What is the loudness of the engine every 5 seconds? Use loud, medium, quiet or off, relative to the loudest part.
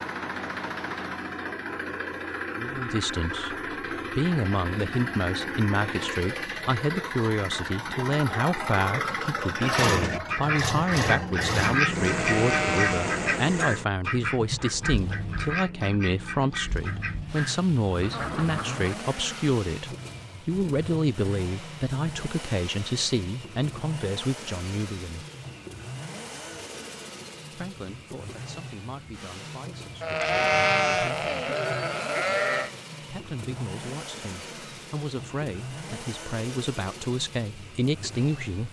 loud, loud, loud, medium, medium, medium, medium, medium.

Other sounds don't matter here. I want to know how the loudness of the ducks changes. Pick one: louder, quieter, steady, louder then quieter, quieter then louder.
quieter.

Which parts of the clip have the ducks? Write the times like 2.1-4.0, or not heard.
9.6-19.0.